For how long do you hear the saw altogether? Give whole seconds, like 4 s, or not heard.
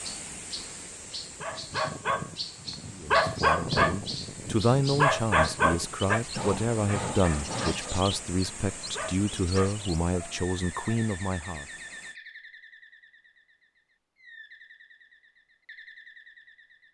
2 s.